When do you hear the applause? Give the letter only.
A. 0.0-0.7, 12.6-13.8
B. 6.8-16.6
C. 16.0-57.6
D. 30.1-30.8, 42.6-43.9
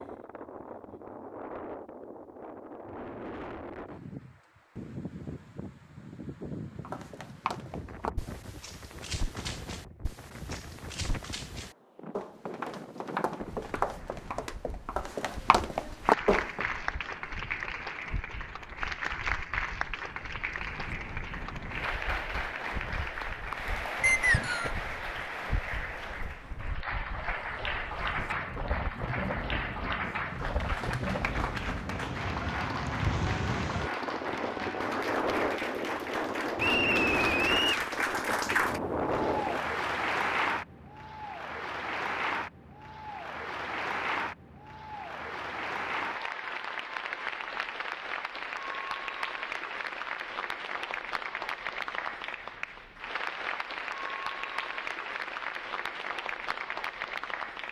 C.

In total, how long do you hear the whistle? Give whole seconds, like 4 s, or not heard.
2 s.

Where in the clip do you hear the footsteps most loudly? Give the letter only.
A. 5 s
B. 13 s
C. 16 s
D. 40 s
C.